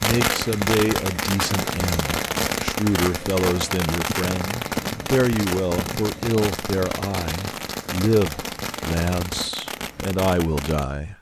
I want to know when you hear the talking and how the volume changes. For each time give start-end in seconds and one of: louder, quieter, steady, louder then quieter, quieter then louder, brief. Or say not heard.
0.0-11.1 steady.